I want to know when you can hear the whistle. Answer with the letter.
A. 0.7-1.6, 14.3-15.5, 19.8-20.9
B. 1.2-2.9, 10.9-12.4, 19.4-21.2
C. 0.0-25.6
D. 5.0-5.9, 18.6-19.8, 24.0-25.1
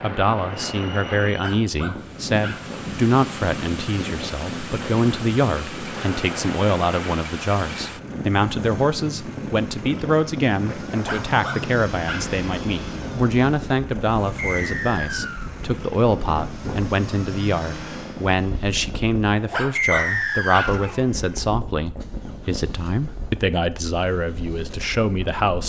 A.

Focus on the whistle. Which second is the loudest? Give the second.
20 s.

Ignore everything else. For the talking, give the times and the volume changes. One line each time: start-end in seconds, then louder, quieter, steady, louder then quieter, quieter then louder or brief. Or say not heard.
0.0-25.6 steady.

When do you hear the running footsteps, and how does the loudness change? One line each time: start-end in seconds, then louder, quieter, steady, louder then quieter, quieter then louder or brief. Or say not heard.
not heard.